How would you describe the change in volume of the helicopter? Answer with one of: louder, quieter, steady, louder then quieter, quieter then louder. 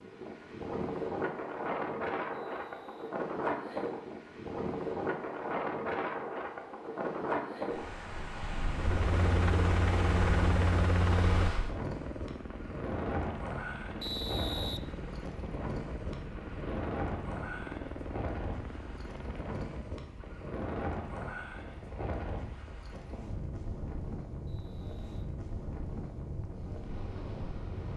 quieter.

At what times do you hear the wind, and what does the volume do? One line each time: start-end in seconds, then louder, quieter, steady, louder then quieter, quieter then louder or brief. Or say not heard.
0.0-27.9 quieter.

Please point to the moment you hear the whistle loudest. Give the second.
14 s.